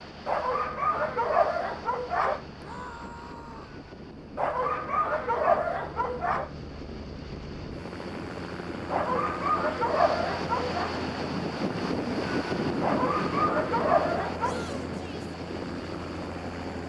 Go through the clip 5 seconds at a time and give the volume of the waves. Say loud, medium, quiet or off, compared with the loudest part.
quiet, medium, loud, medium.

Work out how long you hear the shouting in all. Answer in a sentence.
You can hear the shouting for 2 seconds altogether.